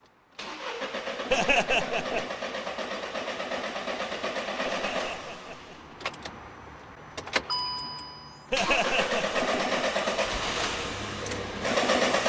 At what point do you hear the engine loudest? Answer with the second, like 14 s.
12 s.